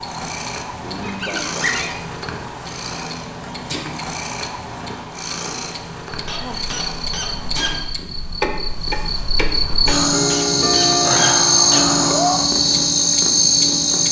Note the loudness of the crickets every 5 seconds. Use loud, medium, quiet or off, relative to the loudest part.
off, medium, loud.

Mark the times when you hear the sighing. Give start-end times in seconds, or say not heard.
0.8-1.6, 6.3-6.8, 11.0-12.6.